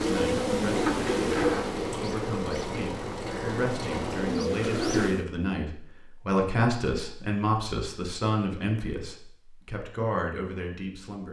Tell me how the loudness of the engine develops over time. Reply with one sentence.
The volume of the engine stays about the same.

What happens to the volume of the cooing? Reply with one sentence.
The loudness of the cooing goes down, then up.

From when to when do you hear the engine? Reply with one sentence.
You can hear the engine from 0.0 to 4.4 s.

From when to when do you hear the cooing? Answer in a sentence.
You can hear the cooing from 0.0 to 5.2 s.